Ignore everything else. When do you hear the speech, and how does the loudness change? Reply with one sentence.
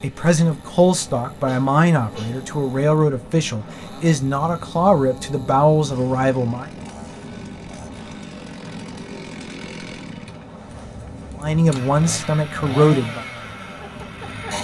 The speech can be heard from 0.0 to 6.7 s, at a steady volume; and briefly from 11.4 to 13.2 s.